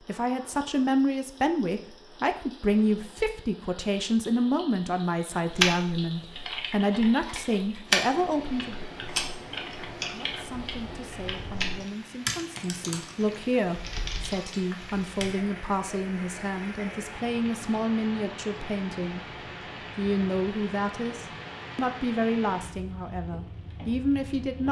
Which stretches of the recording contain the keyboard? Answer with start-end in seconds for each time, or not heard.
5.5-15.3.